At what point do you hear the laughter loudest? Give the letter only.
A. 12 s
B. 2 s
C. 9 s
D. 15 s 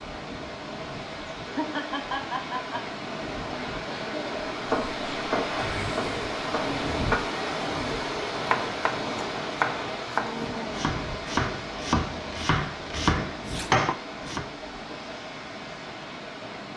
B.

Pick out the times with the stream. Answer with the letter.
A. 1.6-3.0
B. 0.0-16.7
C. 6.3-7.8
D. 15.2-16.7
B.